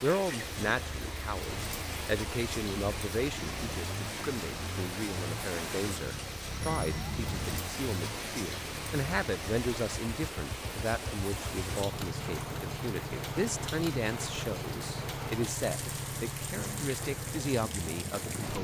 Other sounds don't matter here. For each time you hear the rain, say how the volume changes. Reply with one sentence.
The rain can be heard from 0.0 to 18.5 s, at a steady volume.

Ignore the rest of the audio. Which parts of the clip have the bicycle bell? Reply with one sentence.
The bicycle bell can be heard from 6.5 to 7.6 s.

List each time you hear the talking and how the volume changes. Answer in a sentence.
You can hear the talking from 0.0 to 18.5 s, at a steady volume.